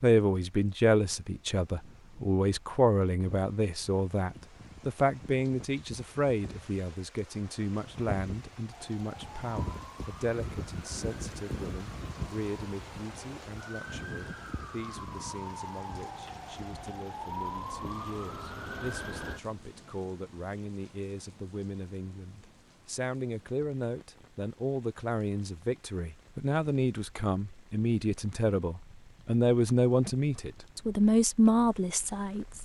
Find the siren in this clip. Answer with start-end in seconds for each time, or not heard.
8.7-19.4.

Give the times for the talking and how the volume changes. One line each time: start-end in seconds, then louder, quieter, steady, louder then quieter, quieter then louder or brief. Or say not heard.
0.0-32.6 quieter then louder.